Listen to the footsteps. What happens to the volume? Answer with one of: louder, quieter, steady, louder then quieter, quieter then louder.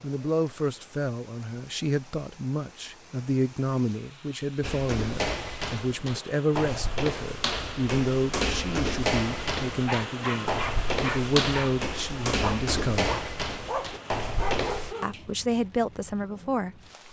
steady.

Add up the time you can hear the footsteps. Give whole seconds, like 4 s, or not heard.
10 s.